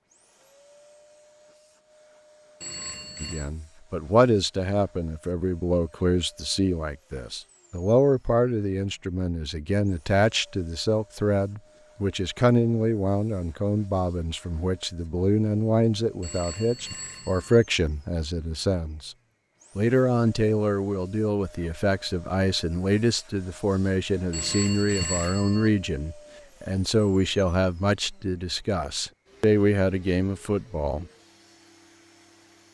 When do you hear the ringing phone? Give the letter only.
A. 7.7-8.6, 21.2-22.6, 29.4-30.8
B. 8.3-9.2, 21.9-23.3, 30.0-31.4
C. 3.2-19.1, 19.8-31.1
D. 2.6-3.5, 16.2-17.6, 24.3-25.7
D.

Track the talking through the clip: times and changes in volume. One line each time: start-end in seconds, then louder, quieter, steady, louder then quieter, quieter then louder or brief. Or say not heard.
3.2-19.1 steady
19.8-31.1 steady.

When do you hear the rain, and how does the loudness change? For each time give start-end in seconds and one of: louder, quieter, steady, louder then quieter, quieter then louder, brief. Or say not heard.
not heard.